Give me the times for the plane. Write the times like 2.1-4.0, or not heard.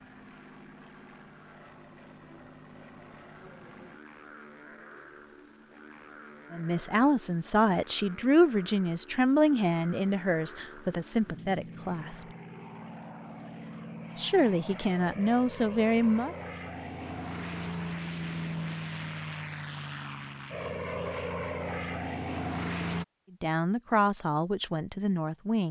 0.0-23.1.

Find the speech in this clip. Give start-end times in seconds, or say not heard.
6.5-12.2, 14.2-16.4, 23.4-25.6.